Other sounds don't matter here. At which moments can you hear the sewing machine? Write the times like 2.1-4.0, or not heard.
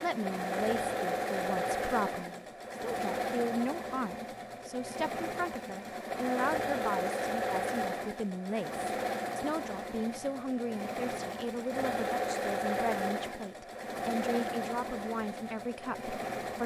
0.0-16.6.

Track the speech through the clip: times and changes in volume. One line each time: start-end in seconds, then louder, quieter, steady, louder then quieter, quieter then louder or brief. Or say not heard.
0.0-16.6 steady.